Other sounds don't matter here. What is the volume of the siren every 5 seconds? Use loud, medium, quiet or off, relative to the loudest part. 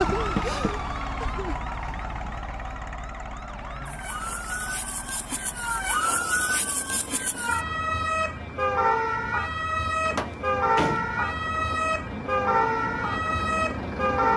medium, loud, loud.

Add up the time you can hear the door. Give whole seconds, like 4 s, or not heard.
2 s.